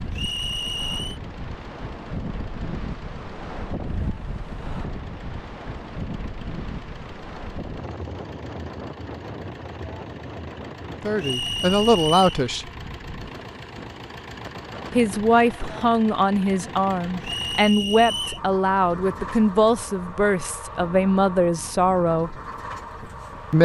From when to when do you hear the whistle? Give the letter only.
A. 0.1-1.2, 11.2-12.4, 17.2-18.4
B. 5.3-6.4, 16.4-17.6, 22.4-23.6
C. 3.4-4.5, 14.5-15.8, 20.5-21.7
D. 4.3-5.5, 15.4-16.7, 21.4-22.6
A.